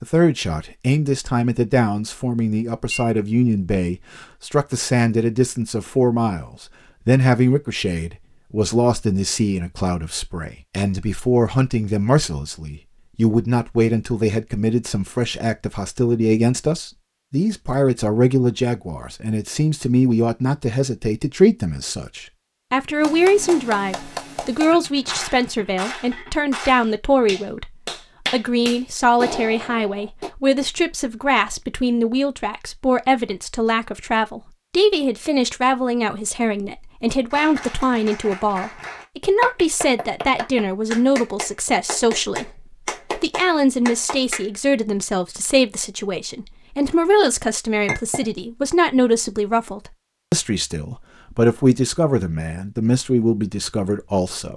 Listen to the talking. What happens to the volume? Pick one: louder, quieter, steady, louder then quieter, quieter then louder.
steady.